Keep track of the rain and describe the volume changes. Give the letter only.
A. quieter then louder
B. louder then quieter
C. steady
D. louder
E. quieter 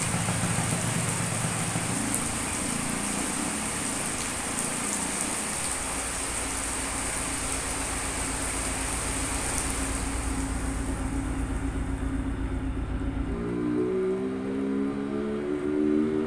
E.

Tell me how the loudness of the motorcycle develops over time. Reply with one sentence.
The loudness of the motorcycle goes down, then up.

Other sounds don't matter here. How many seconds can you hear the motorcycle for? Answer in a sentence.
You can hear the motorcycle for 16 seconds altogether.